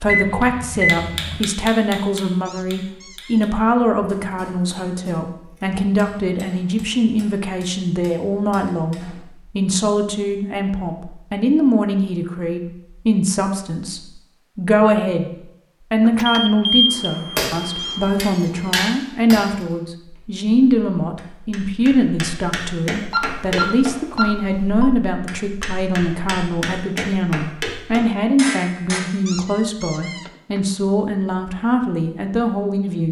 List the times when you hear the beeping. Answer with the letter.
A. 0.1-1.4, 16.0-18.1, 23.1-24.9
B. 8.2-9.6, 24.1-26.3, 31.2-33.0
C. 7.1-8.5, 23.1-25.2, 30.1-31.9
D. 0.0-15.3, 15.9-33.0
A.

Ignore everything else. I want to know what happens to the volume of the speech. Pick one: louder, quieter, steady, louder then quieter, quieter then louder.
steady.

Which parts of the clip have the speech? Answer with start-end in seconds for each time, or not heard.
0.0-15.3, 15.9-33.0.